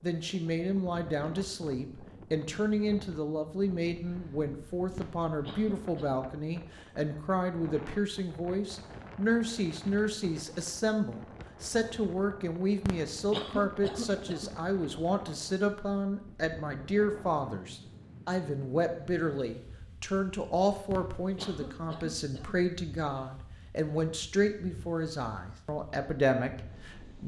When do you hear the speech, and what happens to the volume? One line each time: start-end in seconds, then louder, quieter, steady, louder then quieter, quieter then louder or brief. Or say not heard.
0.0-27.2 steady.